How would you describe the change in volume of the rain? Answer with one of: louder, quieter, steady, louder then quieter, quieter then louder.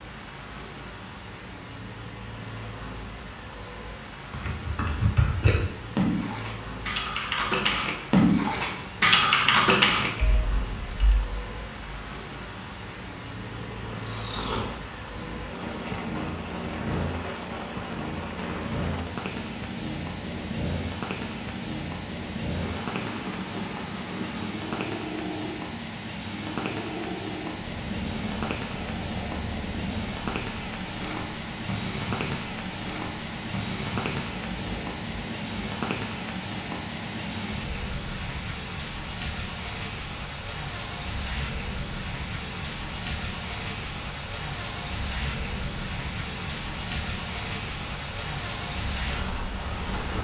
louder.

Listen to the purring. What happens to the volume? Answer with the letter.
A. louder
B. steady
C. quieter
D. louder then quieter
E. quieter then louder
B.